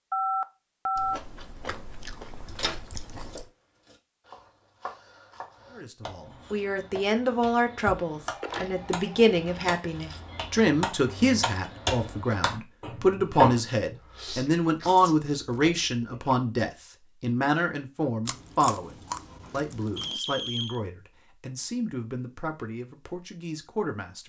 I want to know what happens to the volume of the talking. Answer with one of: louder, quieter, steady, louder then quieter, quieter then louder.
quieter.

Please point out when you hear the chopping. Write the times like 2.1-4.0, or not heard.
3.2-13.7.